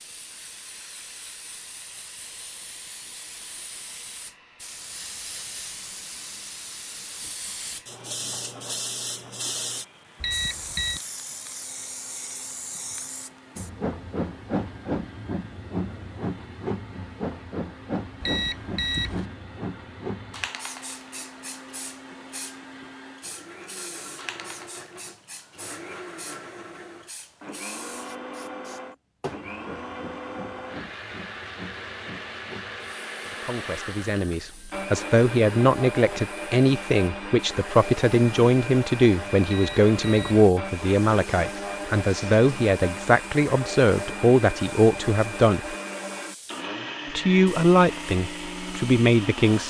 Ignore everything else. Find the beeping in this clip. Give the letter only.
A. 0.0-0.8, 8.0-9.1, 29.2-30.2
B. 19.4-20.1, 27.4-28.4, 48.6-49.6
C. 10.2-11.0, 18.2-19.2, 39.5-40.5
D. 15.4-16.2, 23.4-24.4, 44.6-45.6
C.